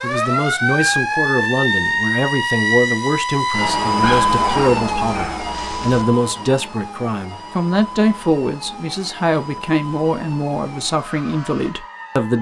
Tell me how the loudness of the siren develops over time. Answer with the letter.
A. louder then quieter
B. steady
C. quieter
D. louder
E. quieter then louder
C.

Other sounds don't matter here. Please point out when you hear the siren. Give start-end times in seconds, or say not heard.
0.0-12.3.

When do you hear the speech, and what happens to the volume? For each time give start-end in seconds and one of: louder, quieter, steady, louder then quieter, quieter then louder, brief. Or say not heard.
0.0-12.3 steady.